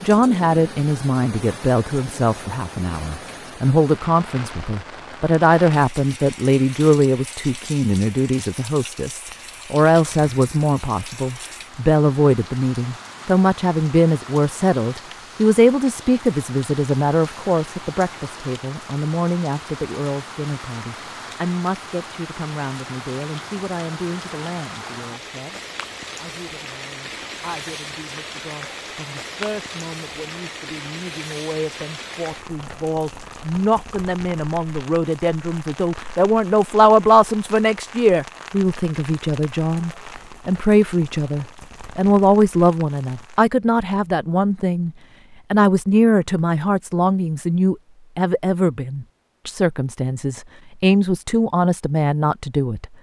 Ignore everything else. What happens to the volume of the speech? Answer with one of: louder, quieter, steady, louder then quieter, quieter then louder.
quieter then louder.